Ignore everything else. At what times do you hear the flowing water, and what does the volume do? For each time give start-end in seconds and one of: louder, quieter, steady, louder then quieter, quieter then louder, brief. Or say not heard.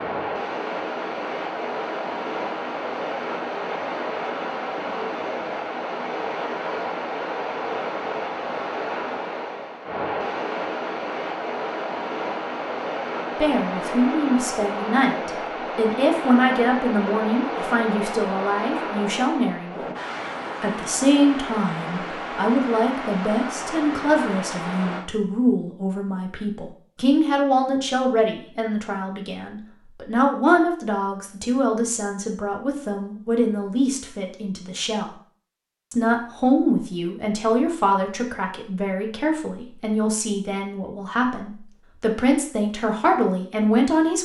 0.0-25.1 steady.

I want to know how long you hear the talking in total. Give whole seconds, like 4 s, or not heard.
29 s.